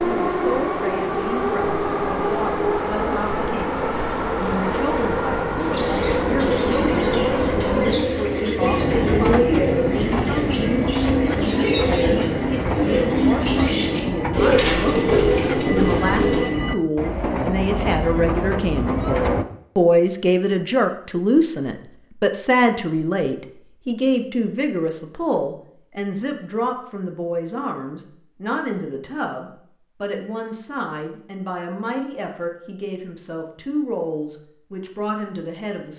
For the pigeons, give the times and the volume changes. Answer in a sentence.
The pigeons can be heard from 5.5 to 16.6 s, at a steady volume.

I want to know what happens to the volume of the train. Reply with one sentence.
The loudness of the train stays about the same.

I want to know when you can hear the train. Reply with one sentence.
You can hear the train from 0.0 to 19.4 s.